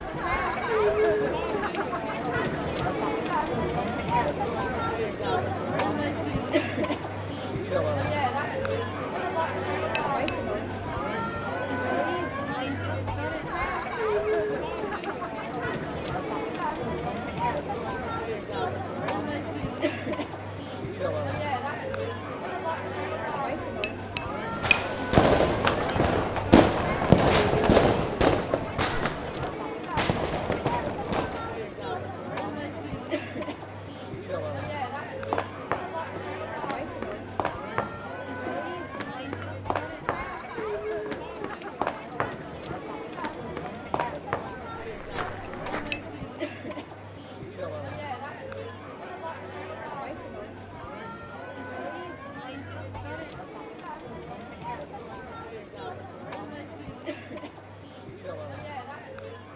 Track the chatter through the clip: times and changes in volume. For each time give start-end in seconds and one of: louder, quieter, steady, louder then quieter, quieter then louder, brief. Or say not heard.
0.0-59.5 quieter.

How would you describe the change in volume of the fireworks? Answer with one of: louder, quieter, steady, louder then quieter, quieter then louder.
quieter.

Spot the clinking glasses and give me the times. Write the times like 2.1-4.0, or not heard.
9.4-10.4, 23.4-24.9, 45.4-46.0.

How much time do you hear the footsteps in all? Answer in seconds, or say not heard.
11 s.